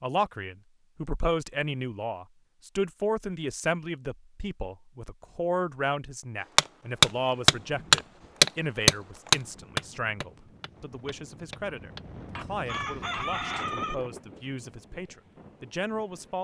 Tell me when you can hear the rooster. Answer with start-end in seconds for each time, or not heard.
12.7-13.9.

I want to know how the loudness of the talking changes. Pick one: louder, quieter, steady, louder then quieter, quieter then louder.
quieter.